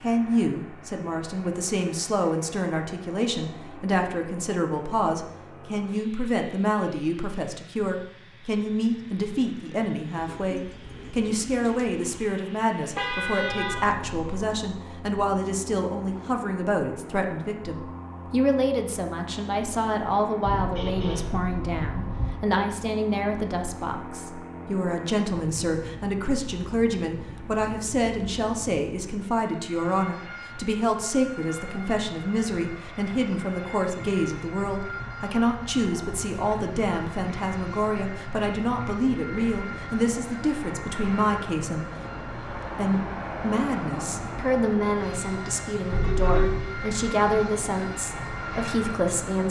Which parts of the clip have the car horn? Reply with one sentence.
The car horn can be heard from 12.9 to 14.3 s, from 20.4 to 22.4 s and from 45.9 to 46.5 s.